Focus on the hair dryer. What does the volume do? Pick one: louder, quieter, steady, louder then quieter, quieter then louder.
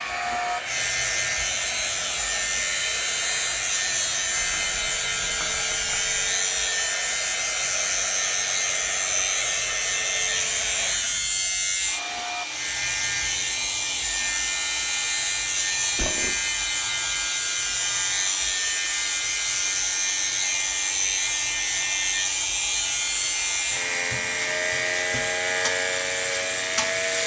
steady.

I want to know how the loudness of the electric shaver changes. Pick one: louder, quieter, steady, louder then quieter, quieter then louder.
steady.